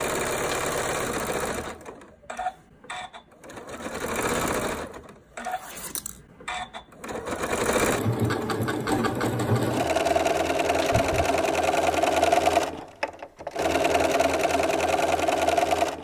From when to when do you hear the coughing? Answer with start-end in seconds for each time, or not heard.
10.9-11.6.